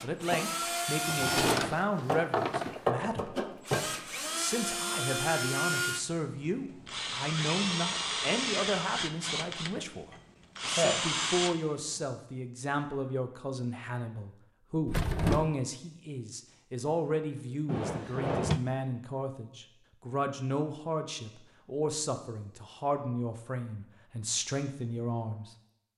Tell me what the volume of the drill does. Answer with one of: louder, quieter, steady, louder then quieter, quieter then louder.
steady.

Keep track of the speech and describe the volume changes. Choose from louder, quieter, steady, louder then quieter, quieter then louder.
steady.